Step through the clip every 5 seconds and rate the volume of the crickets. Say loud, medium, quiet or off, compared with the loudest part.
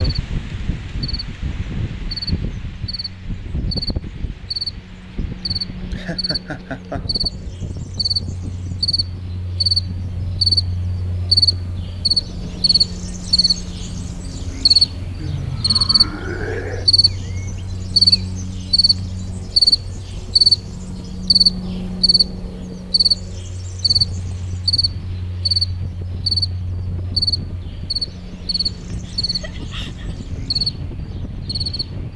medium, medium, loud, loud, loud, medium, medium.